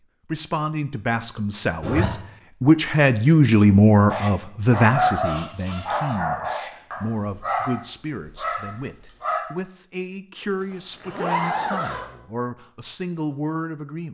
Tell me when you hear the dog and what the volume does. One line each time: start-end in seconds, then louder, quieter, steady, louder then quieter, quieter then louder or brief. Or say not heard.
4.1-9.4 quieter.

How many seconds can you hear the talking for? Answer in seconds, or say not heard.
14 s.